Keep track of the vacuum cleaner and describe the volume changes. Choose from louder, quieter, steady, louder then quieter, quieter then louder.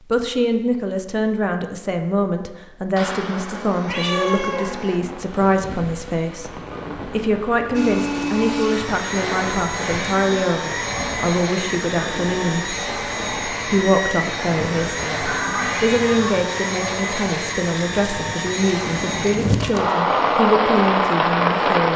steady.